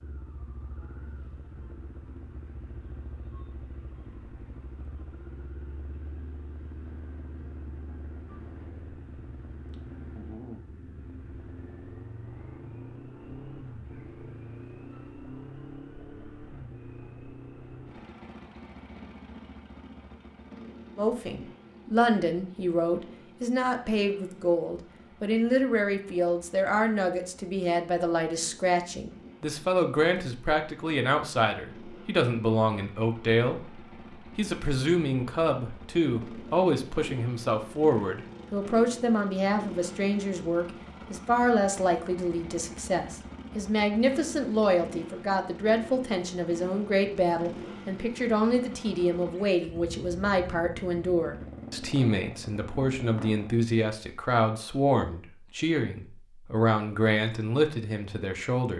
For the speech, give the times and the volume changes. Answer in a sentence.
You can hear the speech from 20.9 to 58.7 s, at a steady volume.